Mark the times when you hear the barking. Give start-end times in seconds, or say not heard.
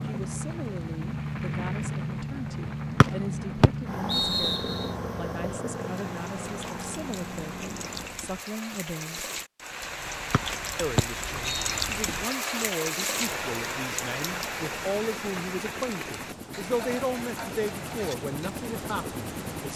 not heard.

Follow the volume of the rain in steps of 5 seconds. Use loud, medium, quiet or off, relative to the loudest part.
quiet, medium, loud, medium.